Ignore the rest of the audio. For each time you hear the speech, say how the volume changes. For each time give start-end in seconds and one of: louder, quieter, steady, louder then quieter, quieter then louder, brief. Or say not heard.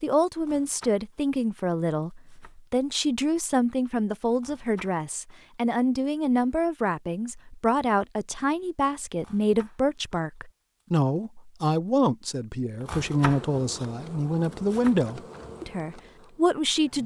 0.0-17.0 steady.